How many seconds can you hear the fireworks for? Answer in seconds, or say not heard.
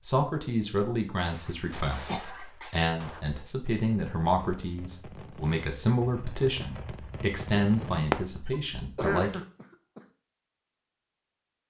7 s.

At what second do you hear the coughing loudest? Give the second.
9 s.